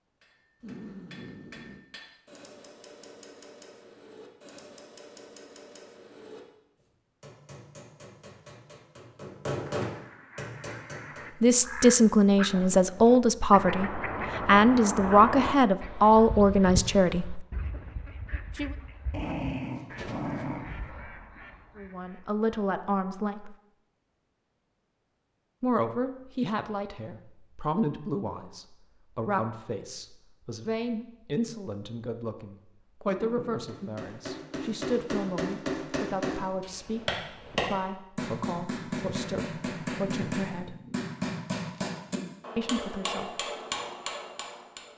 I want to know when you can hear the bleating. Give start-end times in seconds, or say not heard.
not heard.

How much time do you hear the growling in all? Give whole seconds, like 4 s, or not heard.
4 s.